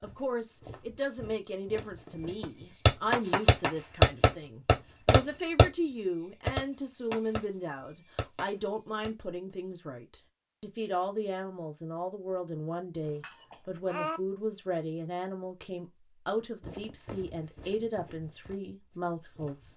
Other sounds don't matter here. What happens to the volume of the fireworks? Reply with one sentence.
The volume of the fireworks goes down.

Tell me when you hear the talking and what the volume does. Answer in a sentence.
The talking can be heard from 0.0 to 19.7 s, at a steady volume.